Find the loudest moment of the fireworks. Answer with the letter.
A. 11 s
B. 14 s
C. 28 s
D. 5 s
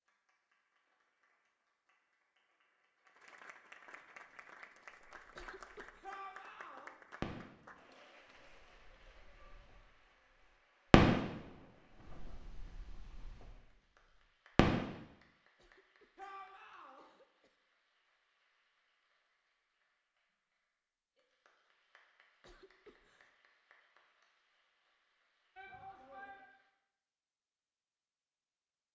A.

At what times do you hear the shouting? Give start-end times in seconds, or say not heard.
6.0-6.9, 16.1-17.1, 25.6-26.4.